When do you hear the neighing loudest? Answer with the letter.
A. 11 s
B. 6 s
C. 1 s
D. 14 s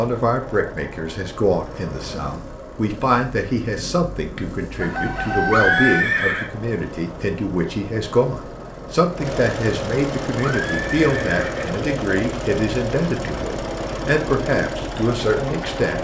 B.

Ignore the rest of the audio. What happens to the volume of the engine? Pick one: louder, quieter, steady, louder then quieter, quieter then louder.
louder.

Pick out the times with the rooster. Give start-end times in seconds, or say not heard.
4.8-6.0.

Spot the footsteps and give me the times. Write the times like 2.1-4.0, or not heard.
not heard.